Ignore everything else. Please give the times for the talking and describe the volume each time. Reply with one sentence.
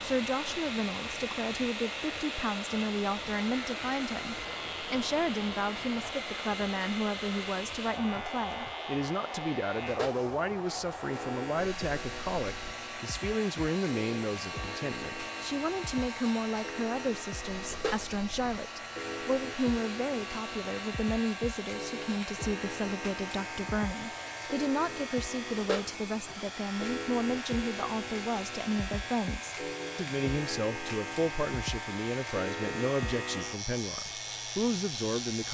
The talking can be heard from 0.0 to 35.4 s, at a steady volume.